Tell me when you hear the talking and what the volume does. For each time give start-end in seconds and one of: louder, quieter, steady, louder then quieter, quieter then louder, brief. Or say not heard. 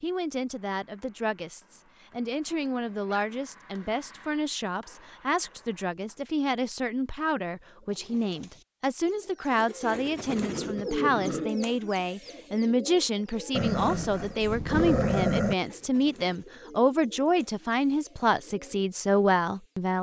0.0-19.9 louder.